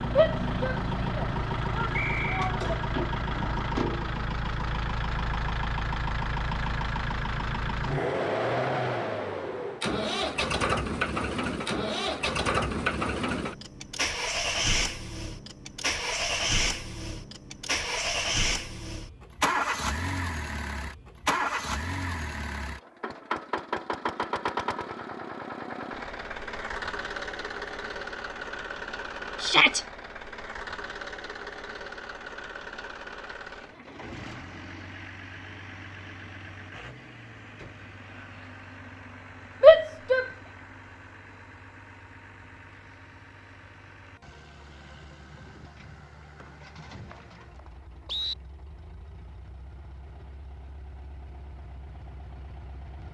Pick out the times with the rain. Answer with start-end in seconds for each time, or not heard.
not heard.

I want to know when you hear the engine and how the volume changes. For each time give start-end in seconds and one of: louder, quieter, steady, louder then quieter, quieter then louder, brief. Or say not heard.
0.0-53.0 quieter.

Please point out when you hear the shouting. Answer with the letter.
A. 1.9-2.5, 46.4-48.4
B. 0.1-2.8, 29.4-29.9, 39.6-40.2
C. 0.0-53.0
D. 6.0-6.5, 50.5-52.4
B.